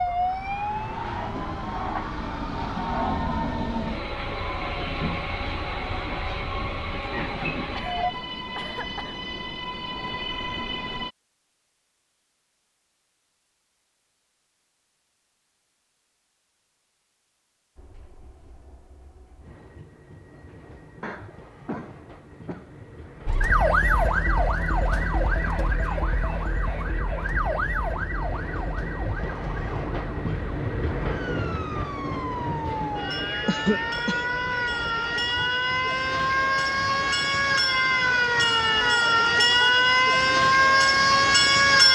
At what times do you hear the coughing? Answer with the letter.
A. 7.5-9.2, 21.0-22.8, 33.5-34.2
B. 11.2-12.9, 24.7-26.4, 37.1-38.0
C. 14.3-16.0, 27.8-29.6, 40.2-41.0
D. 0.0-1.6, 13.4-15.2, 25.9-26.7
A.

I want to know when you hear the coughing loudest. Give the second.
34 s.